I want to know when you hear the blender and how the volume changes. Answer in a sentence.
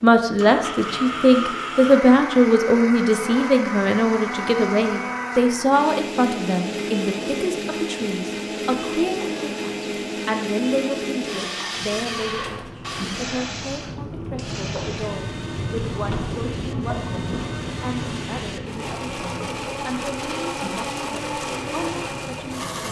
You can hear the blender from 0.2 to 22.8 s, getting quieter then louder.